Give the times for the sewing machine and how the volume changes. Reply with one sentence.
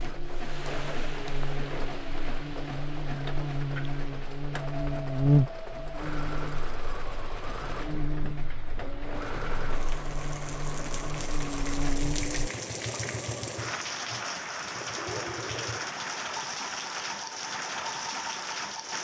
The sewing machine can be heard from 0.0 to 18.9 s, at a steady volume.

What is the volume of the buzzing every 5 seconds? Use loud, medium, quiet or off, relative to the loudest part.
medium, loud, medium, off.